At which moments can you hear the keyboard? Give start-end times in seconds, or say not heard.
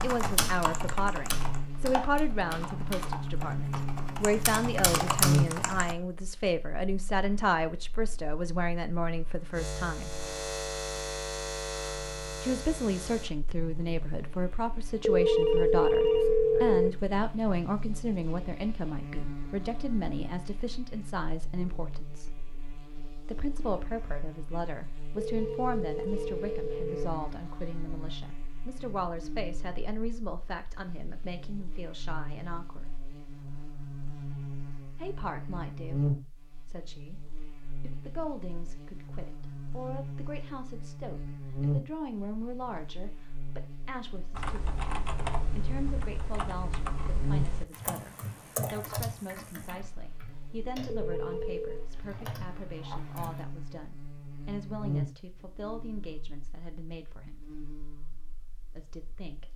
0.0-6.0, 44.4-53.5.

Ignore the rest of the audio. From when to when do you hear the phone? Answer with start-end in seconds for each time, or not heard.
15.1-16.9, 25.1-27.1, 50.9-51.9.